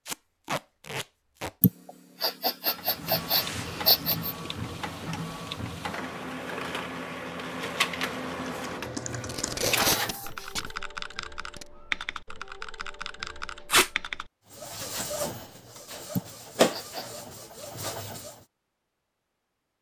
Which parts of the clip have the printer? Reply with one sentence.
You can hear the printer from 2.7 to 10.6 s and from 14.5 to 18.4 s.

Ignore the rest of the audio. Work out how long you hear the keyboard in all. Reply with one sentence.
The keyboard can be heard for 6 seconds in total.